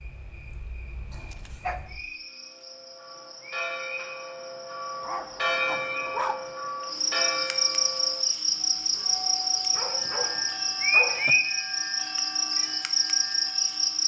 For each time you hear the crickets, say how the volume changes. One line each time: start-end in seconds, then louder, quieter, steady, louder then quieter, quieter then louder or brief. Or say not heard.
0.0-14.0 louder.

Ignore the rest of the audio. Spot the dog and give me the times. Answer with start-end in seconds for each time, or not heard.
1.1-1.9, 5.0-6.4, 9.8-11.3.